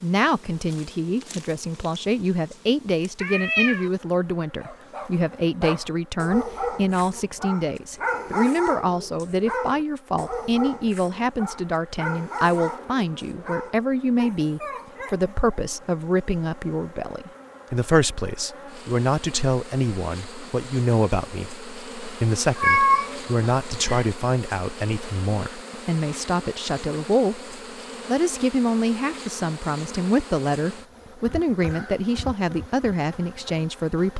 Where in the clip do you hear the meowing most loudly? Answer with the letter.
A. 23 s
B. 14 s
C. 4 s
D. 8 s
A.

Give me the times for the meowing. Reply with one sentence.
The meowing can be heard from 3.2 to 3.9 s and from 22.6 to 24.1 s.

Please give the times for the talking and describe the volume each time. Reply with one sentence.
The talking can be heard from 0.0 to 34.1 s, at a steady volume.